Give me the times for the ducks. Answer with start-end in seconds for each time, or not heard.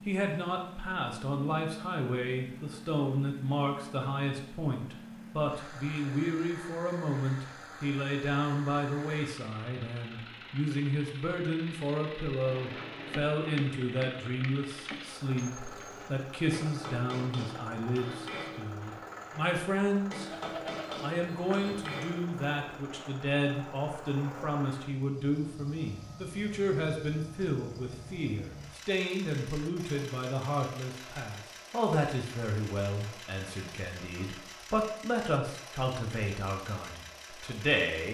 not heard.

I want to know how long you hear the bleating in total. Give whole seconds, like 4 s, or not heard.
2 s.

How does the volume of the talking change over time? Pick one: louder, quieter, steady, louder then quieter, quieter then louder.
steady.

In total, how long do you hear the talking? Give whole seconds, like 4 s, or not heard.
38 s.